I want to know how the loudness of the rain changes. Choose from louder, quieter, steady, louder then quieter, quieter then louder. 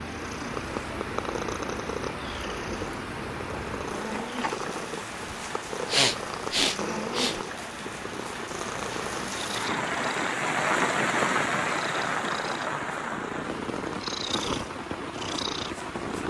louder then quieter.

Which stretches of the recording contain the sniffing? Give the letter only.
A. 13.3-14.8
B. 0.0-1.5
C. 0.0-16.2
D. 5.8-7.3
D.